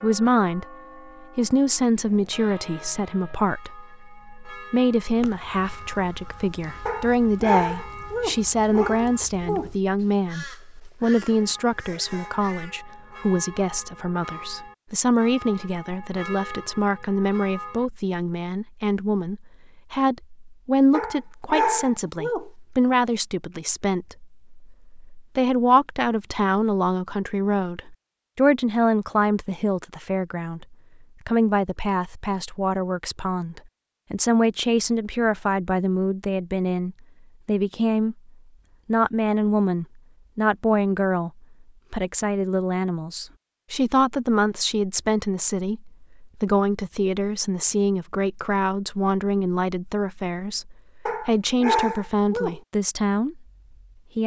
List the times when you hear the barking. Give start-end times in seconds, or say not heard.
6.8-9.7, 20.9-22.5, 51.0-52.6.